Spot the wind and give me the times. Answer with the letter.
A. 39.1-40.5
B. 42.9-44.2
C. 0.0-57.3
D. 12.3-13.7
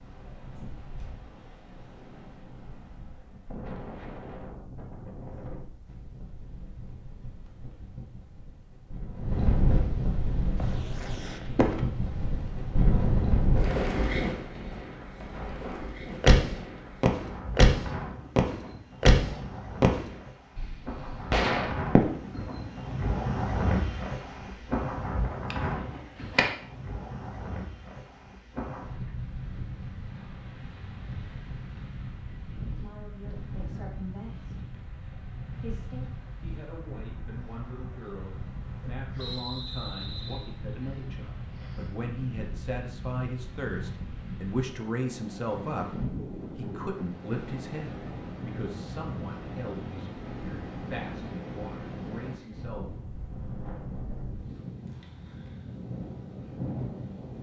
C.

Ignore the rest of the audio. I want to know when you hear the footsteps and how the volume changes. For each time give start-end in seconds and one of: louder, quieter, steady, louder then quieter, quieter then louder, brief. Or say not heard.
not heard.